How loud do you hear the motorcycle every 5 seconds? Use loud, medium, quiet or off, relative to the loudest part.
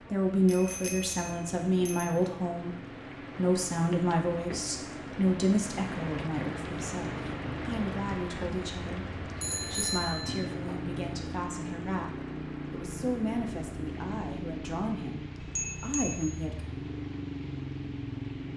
medium, loud, loud, loud.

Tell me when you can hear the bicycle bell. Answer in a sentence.
The bicycle bell can be heard from 0.5 to 2.1 s, from 9.4 to 10.4 s and from 15.4 to 16.2 s.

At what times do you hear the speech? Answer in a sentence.
The speech can be heard from 0.1 to 16.6 s.